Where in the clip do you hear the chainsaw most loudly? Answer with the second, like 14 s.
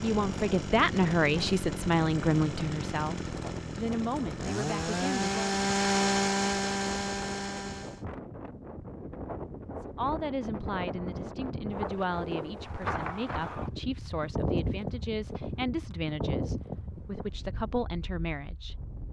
6 s.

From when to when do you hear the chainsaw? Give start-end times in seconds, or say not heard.
0.0-8.1.